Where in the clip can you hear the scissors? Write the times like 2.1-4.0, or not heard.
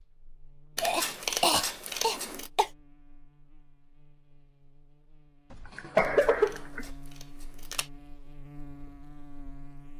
0.8-2.5, 6.0-7.9.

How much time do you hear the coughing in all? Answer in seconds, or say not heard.
3 s.